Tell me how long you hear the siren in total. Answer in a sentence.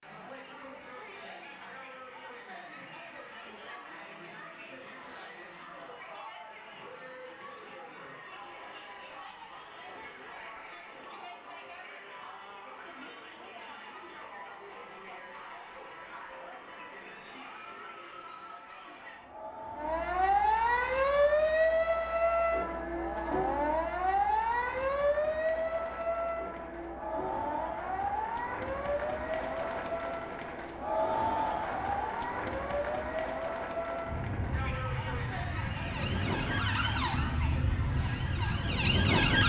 The siren can be heard for 20 seconds in total.